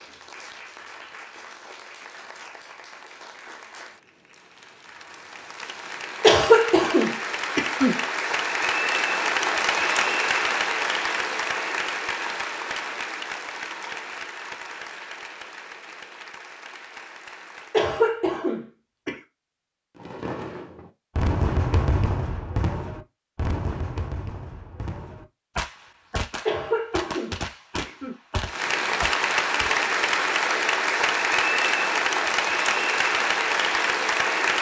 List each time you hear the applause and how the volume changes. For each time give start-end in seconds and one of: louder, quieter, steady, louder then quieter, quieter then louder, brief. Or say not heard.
0.0-17.9 louder then quieter
28.4-34.5 steady.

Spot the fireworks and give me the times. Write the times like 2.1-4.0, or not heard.
19.9-29.7.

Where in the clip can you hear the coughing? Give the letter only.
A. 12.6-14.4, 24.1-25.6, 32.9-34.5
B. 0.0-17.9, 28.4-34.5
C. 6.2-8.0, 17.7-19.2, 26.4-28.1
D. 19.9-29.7
C.